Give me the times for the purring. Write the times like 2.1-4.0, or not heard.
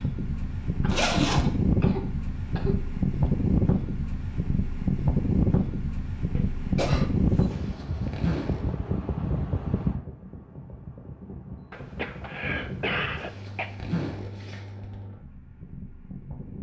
not heard.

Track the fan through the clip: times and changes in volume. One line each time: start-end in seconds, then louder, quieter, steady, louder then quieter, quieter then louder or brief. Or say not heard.
0.0-16.5 quieter.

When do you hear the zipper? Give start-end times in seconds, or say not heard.
0.8-1.4, 7.3-8.7, 12.9-15.0.